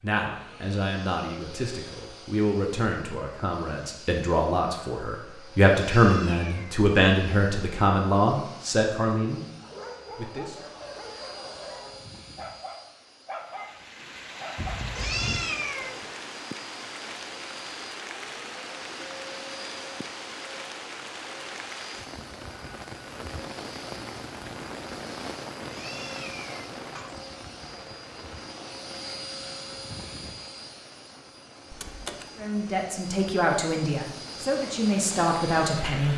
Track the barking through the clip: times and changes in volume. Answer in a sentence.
You can hear the barking from 9.6 to 14.9 s, at a steady volume.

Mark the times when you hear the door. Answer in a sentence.
The door can be heard from 14.6 to 15.4 s and from 31.7 to 32.3 s.